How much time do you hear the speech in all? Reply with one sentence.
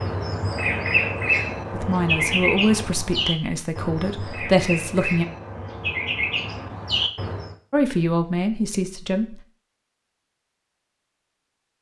The speech can be heard for 5 seconds in total.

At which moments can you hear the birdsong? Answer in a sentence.
The birdsong can be heard from 0.0 to 7.5 s.